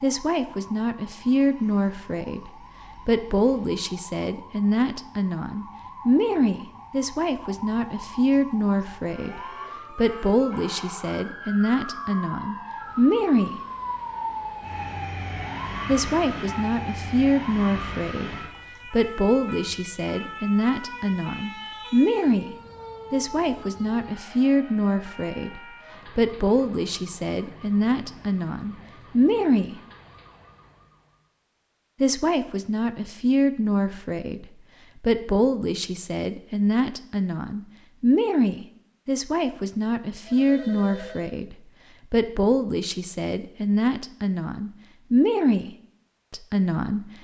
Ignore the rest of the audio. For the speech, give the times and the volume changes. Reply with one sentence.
You can hear the speech from 0.0 to 13.6 s, at a steady volume; from 15.8 to 29.8 s, at a steady volume; and from 32.0 to 47.1 s, at a steady volume.